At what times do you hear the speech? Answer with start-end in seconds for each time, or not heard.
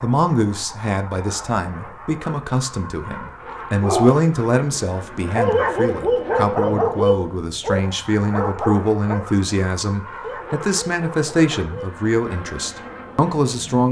0.0-13.8.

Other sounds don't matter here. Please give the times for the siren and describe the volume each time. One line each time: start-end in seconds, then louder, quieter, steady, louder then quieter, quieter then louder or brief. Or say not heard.
not heard.